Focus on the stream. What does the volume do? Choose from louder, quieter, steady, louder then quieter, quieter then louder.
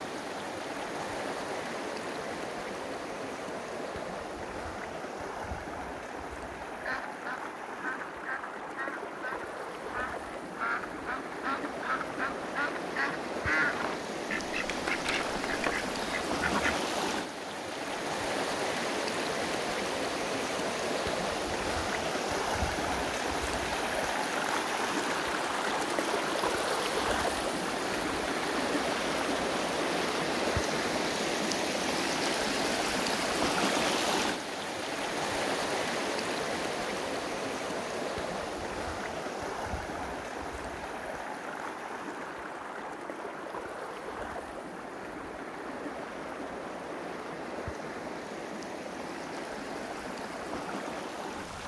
louder then quieter.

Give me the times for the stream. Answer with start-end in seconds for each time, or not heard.
0.0-51.6.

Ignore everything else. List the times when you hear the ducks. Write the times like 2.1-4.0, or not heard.
6.8-16.8.